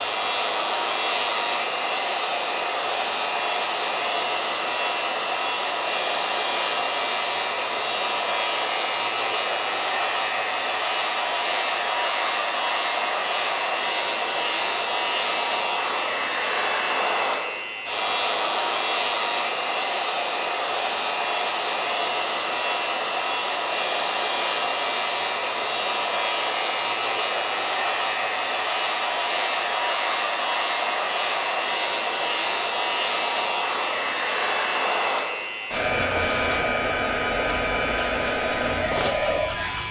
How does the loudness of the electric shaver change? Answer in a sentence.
The volume of the electric shaver stays about the same.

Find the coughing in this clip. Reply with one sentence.
You can't hear the coughing here.